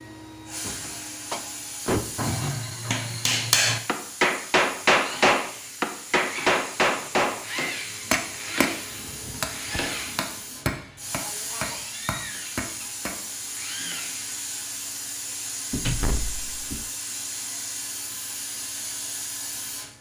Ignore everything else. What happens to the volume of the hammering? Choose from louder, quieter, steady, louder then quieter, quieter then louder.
louder then quieter.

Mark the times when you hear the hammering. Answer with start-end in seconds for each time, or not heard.
2.1-7.4, 8.1-13.2.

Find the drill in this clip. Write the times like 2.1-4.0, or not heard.
5.0-14.5.